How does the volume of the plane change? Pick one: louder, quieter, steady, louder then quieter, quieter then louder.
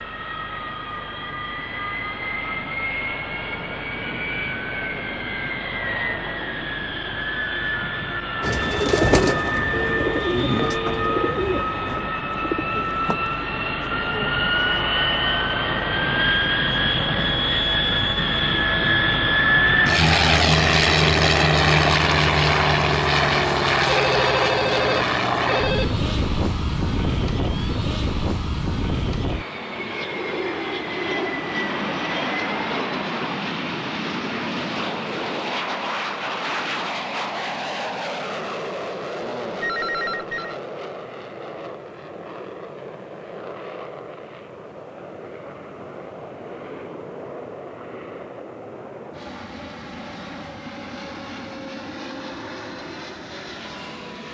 louder then quieter.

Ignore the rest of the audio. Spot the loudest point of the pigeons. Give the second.
9 s.